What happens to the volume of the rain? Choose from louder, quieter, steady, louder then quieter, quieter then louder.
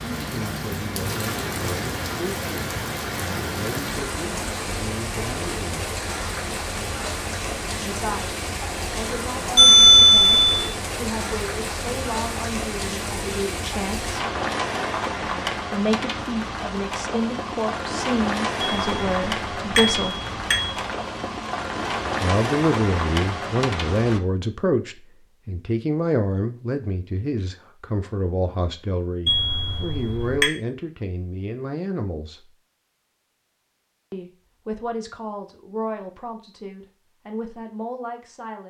steady.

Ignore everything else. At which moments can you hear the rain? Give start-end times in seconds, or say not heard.
0.0-24.2.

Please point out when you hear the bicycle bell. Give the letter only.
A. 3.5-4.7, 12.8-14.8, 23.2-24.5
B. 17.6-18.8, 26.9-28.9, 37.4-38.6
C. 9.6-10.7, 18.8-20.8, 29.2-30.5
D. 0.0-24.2
C.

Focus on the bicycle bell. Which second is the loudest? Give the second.
10 s.